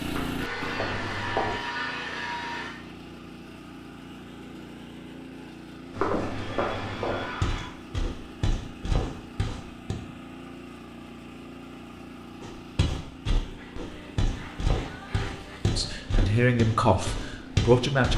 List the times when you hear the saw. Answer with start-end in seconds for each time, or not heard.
0.4-2.8, 6.2-7.8, 13.6-15.6.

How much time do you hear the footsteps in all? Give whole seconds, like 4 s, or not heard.
11 s.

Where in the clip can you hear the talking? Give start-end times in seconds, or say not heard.
15.8-18.1.